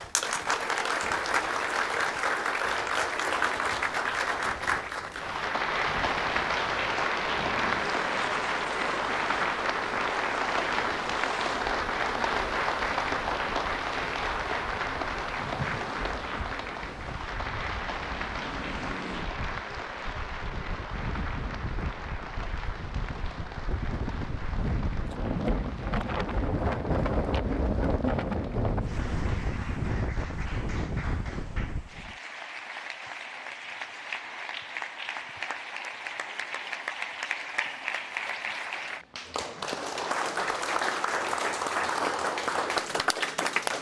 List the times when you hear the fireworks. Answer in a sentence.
You can't hear the fireworks here.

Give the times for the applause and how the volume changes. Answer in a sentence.
The applause can be heard from 0.0 to 43.7 s, getting quieter then louder.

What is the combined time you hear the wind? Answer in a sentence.
You can hear the wind for 32 seconds altogether.